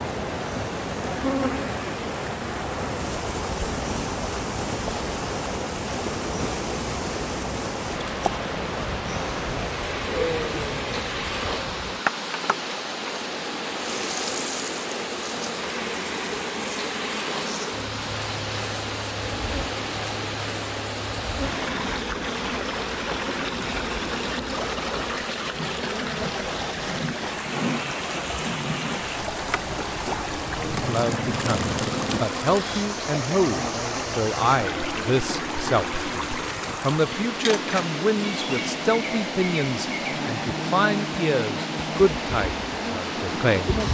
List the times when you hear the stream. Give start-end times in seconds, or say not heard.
0.0-43.8.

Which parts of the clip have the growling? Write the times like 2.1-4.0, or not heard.
9.8-11.6, 30.4-32.9.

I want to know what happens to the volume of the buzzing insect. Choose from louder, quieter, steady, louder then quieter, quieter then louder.
steady.